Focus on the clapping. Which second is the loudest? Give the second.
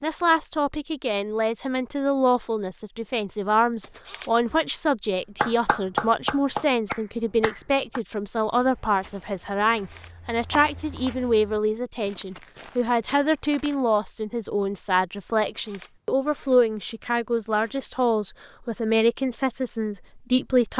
6 s.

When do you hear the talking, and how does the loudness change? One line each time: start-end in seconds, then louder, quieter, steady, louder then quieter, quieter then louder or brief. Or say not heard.
0.0-20.7 steady.